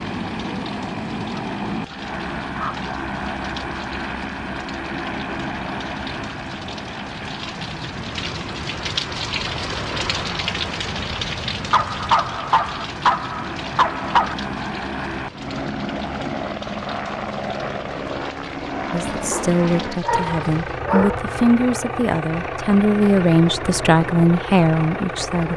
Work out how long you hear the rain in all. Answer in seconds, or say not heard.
21 s.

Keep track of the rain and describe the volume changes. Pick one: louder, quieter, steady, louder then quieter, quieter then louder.
louder then quieter.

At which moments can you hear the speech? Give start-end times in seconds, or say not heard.
18.9-25.5.